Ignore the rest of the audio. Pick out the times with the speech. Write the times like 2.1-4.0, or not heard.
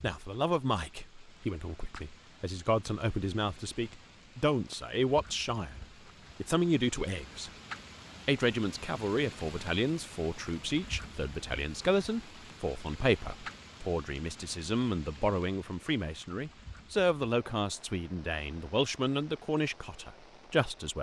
0.0-7.5, 8.2-20.9.